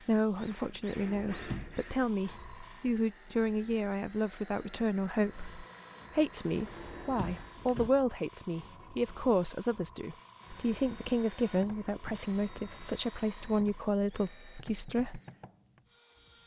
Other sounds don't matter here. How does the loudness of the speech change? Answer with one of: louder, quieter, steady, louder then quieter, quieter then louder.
steady.